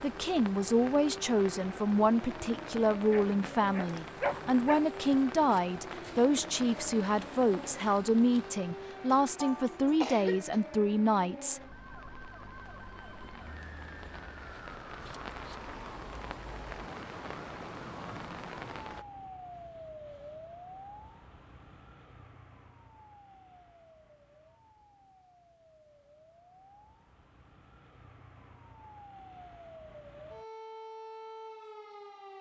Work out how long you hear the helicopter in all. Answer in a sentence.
You can't hear the helicopter here.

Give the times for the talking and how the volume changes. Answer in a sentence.
You can hear the talking from 0.0 to 11.6 s, at a steady volume.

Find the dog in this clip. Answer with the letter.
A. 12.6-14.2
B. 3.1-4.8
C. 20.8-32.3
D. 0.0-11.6
B.